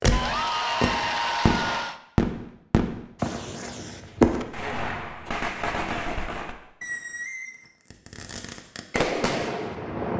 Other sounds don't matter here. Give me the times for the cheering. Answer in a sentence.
You can hear the cheering from 0.1 to 2.0 s.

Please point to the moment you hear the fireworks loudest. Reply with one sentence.
The volume of the fireworks peaks at 4 seconds.